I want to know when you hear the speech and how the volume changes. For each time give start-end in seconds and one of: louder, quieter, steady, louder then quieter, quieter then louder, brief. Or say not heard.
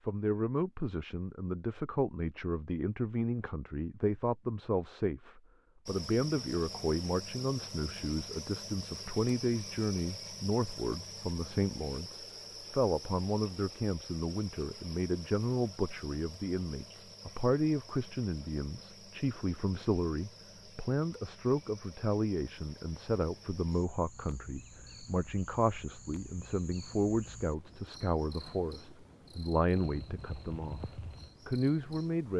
0.1-32.3 steady.